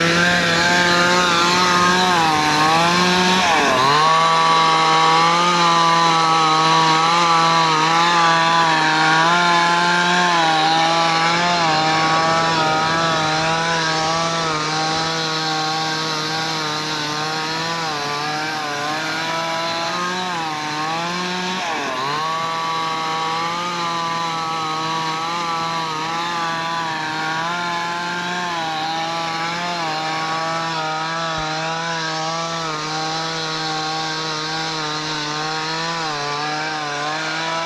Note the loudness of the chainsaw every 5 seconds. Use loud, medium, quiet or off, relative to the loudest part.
loud, loud, loud, medium, medium, medium, medium, medium.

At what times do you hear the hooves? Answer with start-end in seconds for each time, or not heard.
not heard.